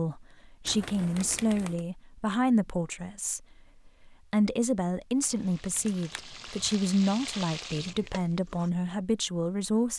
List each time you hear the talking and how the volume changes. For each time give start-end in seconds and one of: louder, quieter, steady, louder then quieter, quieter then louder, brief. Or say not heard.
0.0-9.9 steady.